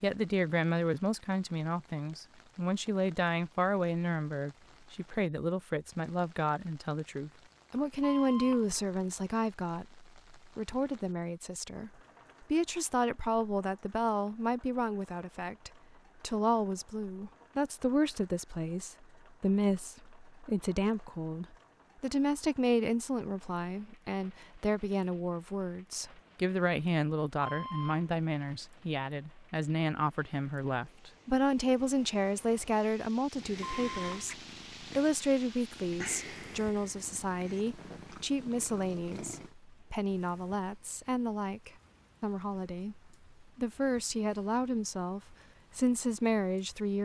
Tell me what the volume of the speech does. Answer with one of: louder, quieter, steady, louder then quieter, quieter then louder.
steady.